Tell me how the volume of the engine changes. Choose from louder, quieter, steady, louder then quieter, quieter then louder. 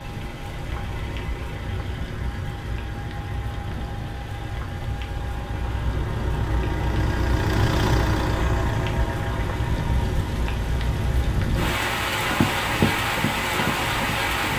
louder then quieter.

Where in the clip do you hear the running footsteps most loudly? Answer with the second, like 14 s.
13 s.